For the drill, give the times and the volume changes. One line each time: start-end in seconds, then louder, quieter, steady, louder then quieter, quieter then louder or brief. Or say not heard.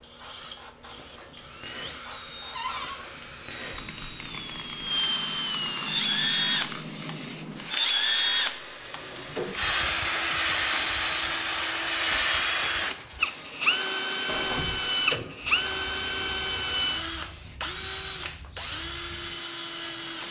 0.0-20.2 louder.